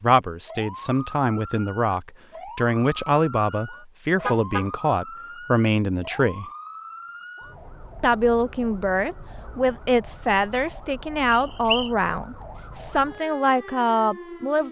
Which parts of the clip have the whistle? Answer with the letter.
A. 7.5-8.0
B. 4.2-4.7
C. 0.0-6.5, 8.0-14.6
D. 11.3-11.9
D.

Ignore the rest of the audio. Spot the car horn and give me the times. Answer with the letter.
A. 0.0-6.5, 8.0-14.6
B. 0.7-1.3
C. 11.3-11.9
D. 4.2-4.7
D.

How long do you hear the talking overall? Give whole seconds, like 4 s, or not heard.
13 s.